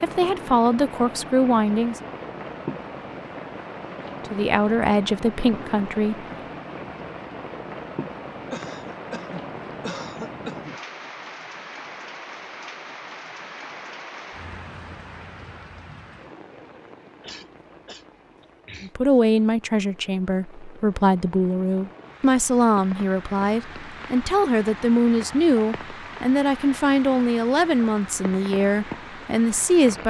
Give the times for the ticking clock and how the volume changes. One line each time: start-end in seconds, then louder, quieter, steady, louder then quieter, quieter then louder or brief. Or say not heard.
not heard.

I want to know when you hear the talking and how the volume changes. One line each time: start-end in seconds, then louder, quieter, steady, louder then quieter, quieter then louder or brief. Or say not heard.
0.0-2.0 brief
4.3-6.2 brief
18.8-30.0 steady.